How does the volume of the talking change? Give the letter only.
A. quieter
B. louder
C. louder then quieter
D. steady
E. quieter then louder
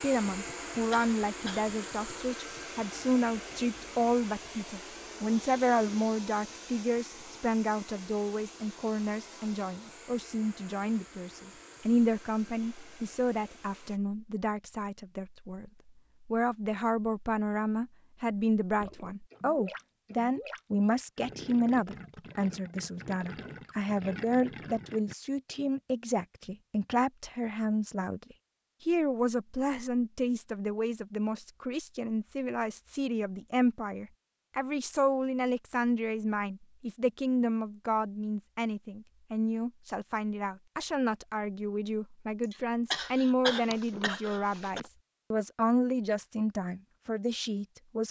D.